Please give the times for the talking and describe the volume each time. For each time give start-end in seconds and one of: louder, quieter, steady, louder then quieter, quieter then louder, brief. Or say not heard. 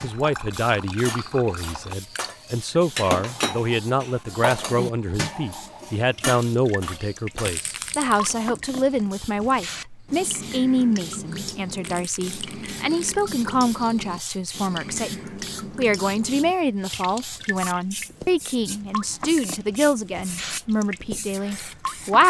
0.0-22.2 steady.